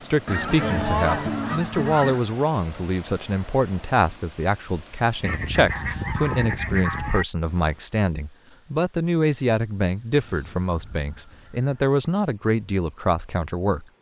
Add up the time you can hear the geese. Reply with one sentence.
You can hear the geese for 6 seconds altogether.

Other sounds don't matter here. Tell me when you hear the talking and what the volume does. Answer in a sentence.
You can hear the talking from 0.0 to 13.8 s, at a steady volume.